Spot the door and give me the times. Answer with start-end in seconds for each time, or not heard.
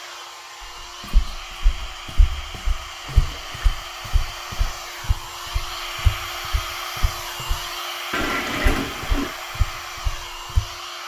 not heard.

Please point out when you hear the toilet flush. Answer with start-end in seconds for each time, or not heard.
3.0-3.8, 8.1-9.3.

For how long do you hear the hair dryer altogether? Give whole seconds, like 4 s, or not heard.
11 s.